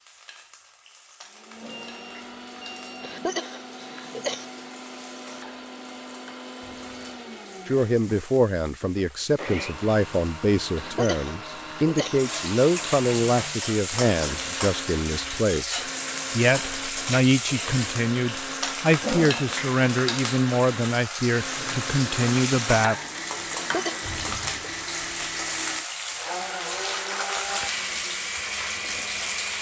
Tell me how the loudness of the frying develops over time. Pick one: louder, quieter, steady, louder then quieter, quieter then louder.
louder.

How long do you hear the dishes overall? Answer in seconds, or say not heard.
not heard.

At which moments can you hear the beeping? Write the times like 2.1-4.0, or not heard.
1.7-3.2.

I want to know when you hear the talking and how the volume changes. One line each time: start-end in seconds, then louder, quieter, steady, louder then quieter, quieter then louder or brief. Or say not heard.
7.7-22.9 steady.